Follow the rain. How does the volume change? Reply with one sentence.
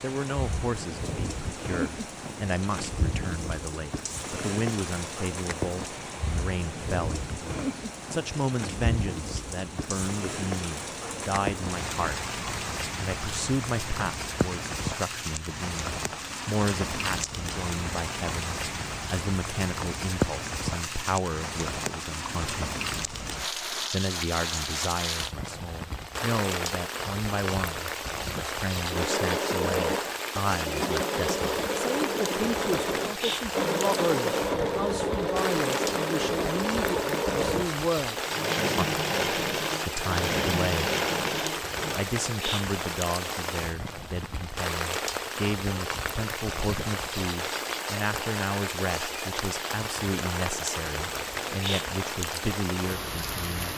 The loudness of the rain stays about the same.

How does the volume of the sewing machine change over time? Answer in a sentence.
The loudness of the sewing machine stays about the same.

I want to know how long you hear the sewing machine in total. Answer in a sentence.
The sewing machine can be heard for 13 seconds in total.